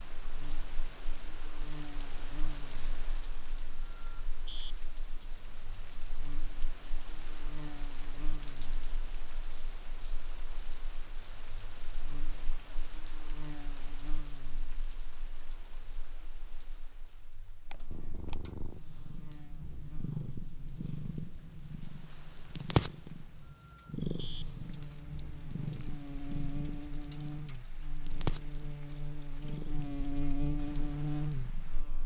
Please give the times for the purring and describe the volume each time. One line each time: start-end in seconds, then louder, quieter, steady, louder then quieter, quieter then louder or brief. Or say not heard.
17.9-32.0 louder then quieter.